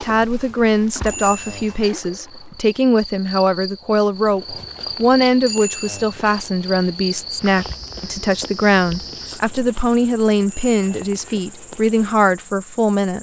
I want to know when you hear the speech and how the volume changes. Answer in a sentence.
The speech can be heard from 0.0 to 13.1 s, at a steady volume.